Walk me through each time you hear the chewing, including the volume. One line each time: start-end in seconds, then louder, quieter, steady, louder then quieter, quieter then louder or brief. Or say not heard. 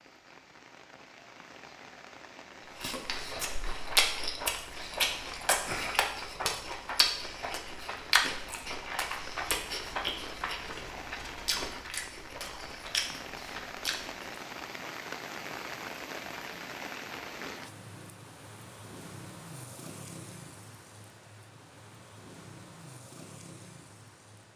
2.8-14.2 quieter.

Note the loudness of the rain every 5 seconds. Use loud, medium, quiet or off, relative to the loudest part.
medium, medium, loud, loud, medium.